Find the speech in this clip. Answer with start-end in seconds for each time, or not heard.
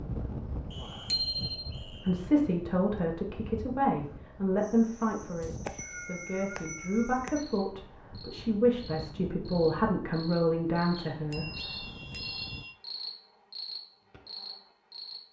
2.0-11.4.